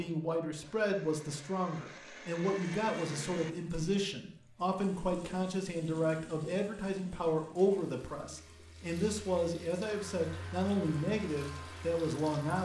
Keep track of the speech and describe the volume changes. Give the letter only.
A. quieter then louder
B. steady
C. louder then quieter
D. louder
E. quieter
B.